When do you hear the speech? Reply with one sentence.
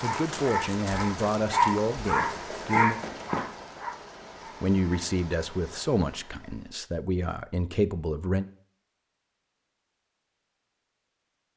You can hear the speech from 0.0 to 3.0 s and from 4.6 to 8.4 s.